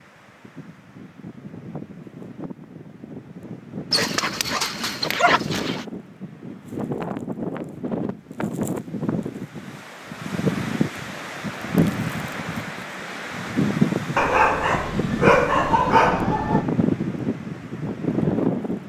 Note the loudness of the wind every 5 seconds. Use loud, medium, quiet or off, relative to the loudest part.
quiet, medium, loud, loud.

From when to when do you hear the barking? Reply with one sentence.
The barking can be heard from 3.9 to 5.8 s and from 14.2 to 16.6 s.